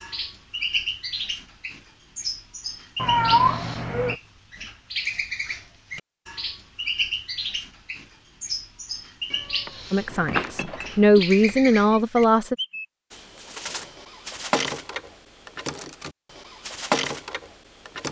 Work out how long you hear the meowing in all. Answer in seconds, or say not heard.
4 s.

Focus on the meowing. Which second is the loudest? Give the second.
3 s.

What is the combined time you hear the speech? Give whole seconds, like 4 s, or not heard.
3 s.